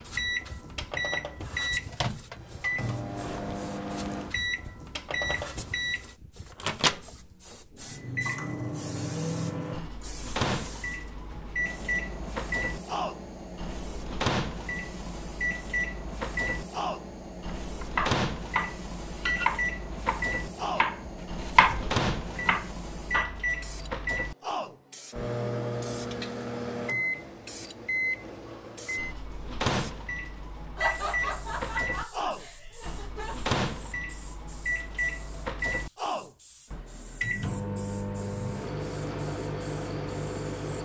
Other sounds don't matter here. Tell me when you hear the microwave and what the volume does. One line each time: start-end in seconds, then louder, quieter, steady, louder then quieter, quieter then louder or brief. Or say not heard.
0.0-40.7 steady.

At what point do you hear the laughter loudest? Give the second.
31 s.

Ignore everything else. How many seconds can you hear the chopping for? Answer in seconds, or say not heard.
6 s.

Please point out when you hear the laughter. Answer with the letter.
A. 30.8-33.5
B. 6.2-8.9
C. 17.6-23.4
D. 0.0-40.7
A.